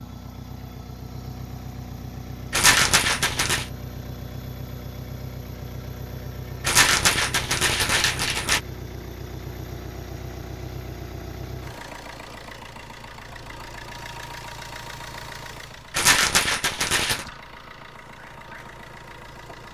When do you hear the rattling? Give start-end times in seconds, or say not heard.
2.5-3.6, 6.6-8.6, 15.9-17.2.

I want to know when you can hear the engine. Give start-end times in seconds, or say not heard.
0.0-19.7.